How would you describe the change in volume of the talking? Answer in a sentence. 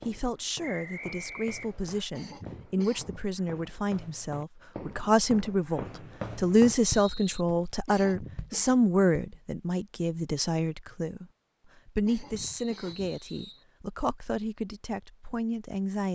The volume of the talking goes up, then down.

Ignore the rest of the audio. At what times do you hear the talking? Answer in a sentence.
The talking can be heard from 0.1 to 11.2 s and from 11.8 to 16.1 s.